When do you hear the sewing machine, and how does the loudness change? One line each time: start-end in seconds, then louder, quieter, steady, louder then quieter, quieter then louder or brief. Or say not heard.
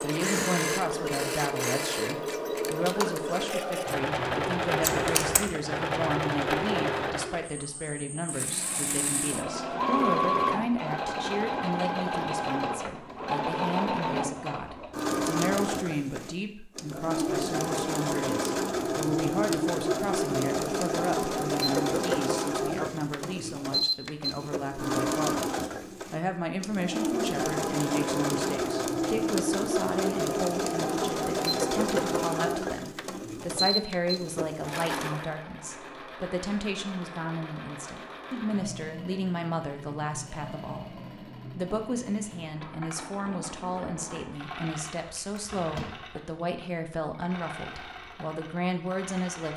0.0-49.5 quieter.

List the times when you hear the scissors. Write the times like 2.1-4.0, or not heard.
4.8-5.5, 45.0-46.0.